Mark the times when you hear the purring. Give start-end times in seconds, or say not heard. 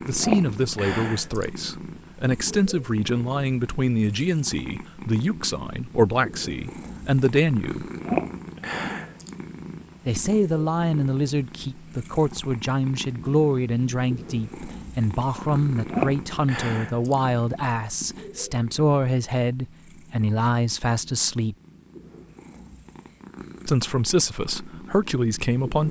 0.0-25.8.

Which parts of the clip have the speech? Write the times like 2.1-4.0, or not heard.
0.1-7.9, 10.1-21.6, 23.6-25.8.